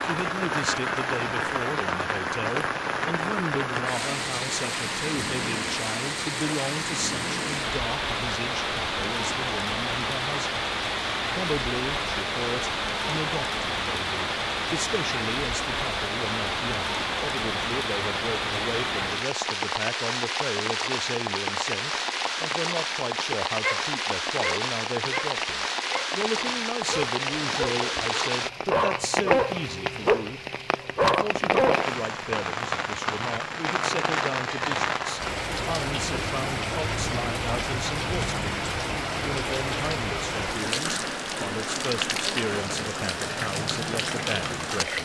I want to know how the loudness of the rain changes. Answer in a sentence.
The volume of the rain stays about the same.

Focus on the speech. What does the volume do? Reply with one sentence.
The loudness of the speech stays about the same.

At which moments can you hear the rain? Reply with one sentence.
You can hear the rain from 0.0 to 45.0 s.